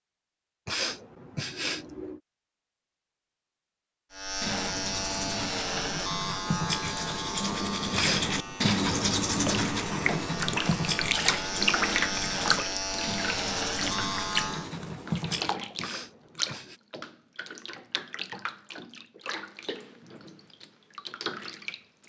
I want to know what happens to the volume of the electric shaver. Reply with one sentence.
The volume of the electric shaver goes down, then up.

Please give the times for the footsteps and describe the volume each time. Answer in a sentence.
The footsteps can't be heard in this clip.